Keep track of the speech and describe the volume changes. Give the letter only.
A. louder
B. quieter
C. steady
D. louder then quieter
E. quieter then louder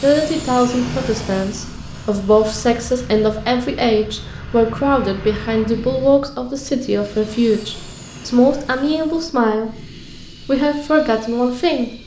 C.